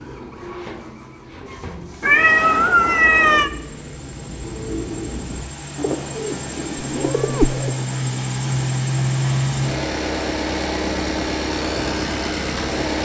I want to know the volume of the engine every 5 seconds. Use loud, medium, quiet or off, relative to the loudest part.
quiet, loud, loud.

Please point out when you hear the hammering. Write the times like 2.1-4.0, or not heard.
not heard.